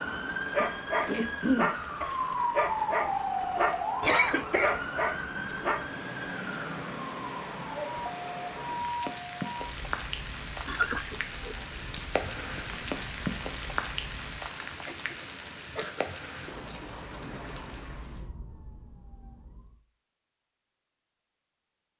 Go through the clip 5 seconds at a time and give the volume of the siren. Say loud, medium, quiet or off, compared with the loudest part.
loud, medium, quiet, quiet, off.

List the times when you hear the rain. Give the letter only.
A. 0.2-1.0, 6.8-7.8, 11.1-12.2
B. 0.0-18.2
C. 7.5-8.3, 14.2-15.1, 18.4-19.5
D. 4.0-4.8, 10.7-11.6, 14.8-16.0
B.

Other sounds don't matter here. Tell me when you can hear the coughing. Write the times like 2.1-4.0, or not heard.
4.0-4.8, 10.7-11.6, 14.8-16.0.